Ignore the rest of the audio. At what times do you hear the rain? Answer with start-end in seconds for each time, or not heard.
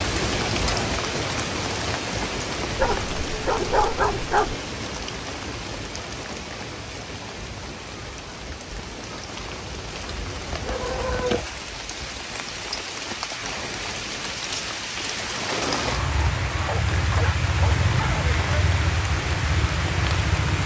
0.0-20.6.